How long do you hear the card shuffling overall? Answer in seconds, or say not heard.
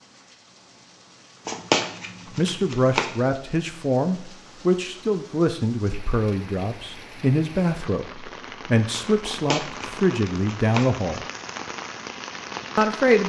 3 s.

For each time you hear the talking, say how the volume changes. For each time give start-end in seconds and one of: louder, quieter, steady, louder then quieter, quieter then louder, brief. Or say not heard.
2.4-11.2 steady
12.8-13.2 brief.